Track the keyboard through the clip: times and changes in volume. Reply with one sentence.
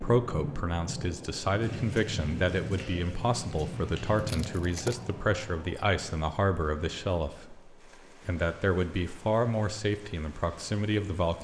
The keyboard can't be heard in this clip.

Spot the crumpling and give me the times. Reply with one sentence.
The crumpling can be heard from 4.1 to 5.0 s.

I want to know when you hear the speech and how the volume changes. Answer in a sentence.
The speech can be heard from 0.0 to 11.4 s, at a steady volume.